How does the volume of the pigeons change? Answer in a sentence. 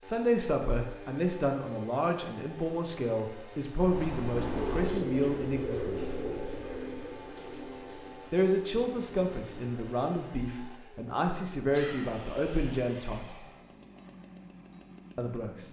The loudness of the pigeons goes down.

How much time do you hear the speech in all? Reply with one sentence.
The speech can be heard for 12 seconds in total.